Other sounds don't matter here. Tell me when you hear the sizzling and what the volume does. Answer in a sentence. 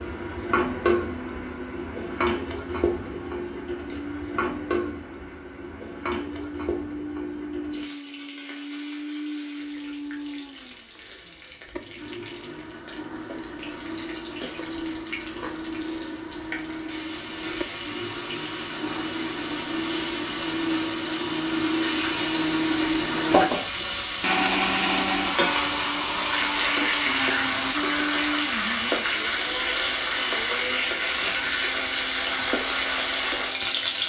The sizzling can be heard from 0.0 to 34.0 s, getting quieter then louder.